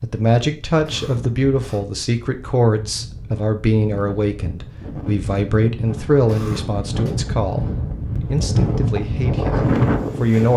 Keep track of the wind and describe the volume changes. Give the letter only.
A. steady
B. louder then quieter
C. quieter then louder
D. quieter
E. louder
E.